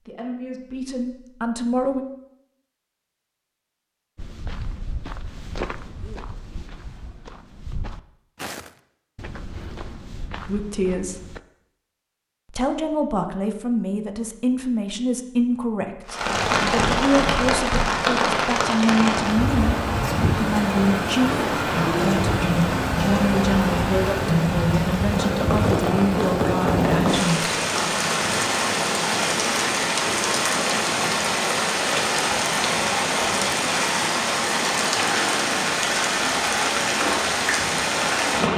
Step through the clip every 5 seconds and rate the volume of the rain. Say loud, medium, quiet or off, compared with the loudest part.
off, off, off, loud, loud, loud, loud, loud.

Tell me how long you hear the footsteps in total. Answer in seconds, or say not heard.
7 s.